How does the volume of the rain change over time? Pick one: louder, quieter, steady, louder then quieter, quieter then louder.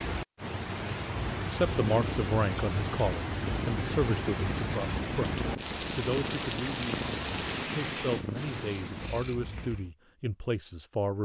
steady.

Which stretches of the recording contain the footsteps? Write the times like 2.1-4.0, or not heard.
not heard.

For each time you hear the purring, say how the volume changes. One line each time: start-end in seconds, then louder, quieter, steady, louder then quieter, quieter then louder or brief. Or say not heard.
1.9-9.9 steady.